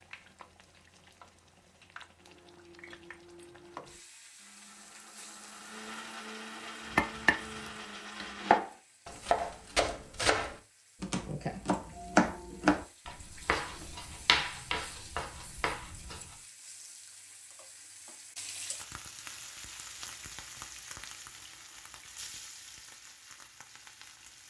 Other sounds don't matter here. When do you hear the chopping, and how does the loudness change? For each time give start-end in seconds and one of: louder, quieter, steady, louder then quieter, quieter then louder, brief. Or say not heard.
7.0-16.4 quieter.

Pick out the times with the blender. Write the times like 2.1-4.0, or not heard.
2.1-8.6.